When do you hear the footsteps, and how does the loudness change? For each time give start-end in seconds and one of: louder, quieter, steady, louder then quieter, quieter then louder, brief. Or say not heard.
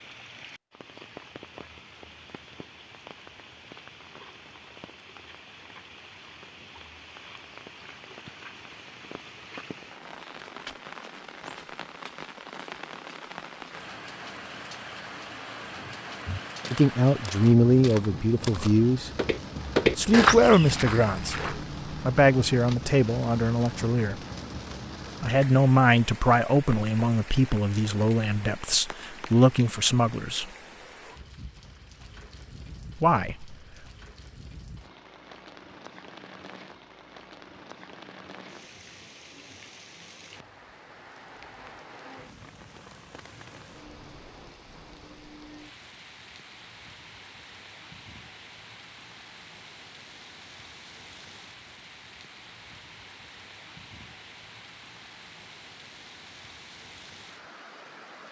15.7-21.6 louder.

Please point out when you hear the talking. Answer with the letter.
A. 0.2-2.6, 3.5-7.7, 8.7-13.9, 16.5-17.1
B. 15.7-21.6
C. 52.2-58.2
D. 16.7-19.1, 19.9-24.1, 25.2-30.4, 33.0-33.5
D.